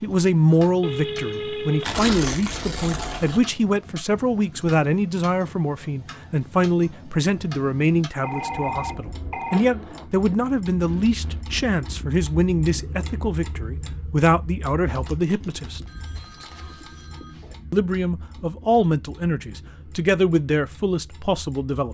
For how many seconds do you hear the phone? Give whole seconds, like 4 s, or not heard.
5 s.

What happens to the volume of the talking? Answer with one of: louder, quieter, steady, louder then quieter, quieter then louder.
steady.